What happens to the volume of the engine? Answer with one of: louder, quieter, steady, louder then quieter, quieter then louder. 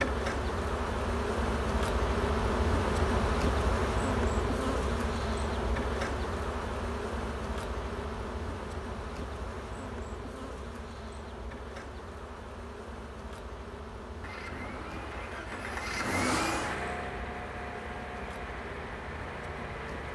louder then quieter.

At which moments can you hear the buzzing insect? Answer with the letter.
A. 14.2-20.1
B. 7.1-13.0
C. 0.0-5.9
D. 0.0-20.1
D.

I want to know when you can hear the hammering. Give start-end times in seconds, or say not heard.
not heard.